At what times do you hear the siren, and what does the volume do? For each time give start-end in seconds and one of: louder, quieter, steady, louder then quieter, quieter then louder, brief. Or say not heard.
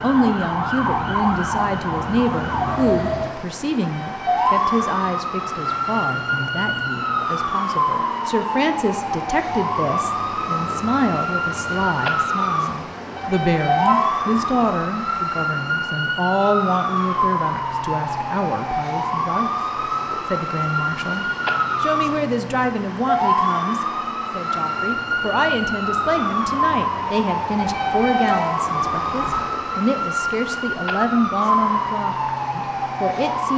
0.0-33.5 steady.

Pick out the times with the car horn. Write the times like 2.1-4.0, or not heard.
3.8-4.5, 13.2-14.9, 27.6-29.4.